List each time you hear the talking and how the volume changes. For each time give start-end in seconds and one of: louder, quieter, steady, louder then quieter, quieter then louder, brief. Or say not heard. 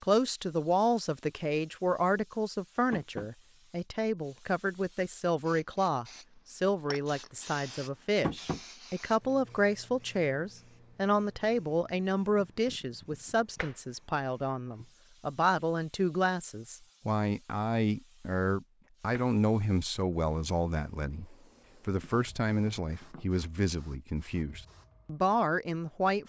0.0-26.2 steady.